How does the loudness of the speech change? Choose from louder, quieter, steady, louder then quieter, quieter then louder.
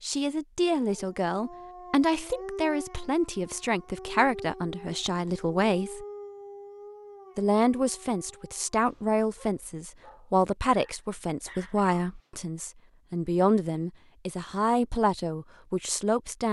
steady.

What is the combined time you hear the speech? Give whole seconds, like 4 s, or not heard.
15 s.